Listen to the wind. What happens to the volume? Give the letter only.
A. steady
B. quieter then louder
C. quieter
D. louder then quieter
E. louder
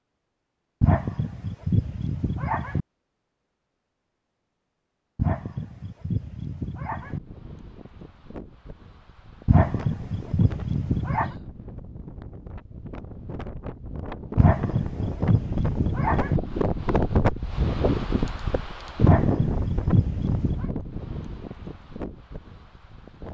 D.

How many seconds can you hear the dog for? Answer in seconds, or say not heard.
10 s.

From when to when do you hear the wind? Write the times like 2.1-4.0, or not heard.
7.0-23.2.